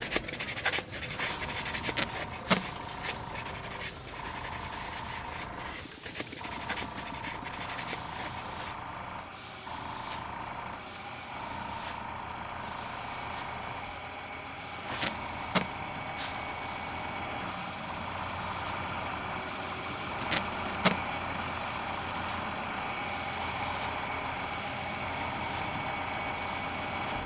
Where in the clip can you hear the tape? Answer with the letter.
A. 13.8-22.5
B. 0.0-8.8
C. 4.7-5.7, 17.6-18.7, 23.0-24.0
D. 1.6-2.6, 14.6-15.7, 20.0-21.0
D.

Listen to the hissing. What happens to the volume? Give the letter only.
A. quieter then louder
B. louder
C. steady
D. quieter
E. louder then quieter
C.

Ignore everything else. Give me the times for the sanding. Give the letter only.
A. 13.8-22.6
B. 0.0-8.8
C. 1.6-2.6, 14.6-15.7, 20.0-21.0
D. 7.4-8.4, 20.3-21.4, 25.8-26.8
B.